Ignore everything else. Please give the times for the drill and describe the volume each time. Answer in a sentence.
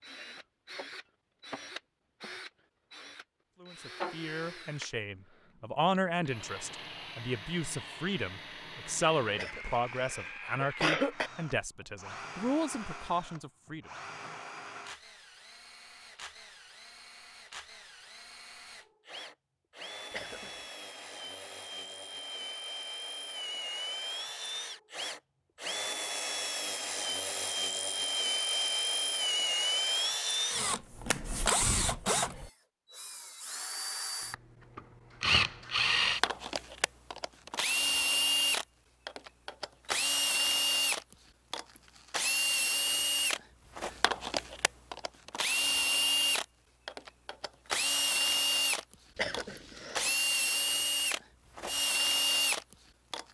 The drill can be heard from 0.0 to 53.2 s, getting louder.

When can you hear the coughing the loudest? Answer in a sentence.
The loudest moment of the coughing is at 11 seconds.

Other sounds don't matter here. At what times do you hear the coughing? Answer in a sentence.
You can hear the coughing from 9.3 to 11.3 s, from 20.1 to 20.6 s and from 49.1 to 50.1 s.